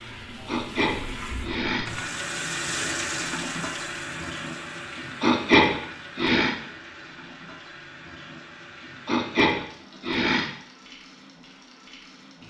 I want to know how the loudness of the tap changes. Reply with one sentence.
The volume of the tap goes down.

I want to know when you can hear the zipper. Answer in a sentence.
You can't hear the zipper here.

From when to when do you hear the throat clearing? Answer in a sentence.
You can hear the throat clearing from 0.5 to 1.9 s, from 5.2 to 6.5 s and from 9.1 to 10.5 s.